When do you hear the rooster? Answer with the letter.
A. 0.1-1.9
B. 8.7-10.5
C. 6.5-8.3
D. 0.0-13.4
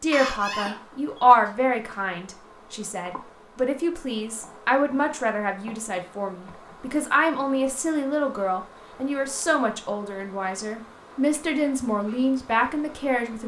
A.